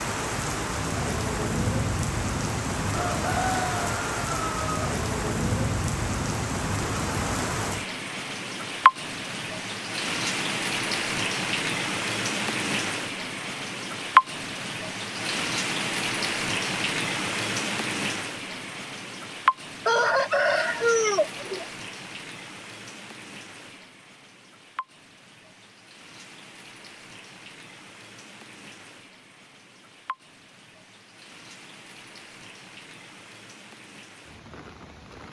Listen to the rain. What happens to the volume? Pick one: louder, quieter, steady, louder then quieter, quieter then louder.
quieter.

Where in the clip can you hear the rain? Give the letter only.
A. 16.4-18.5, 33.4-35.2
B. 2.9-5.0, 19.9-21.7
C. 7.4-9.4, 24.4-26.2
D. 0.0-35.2
D.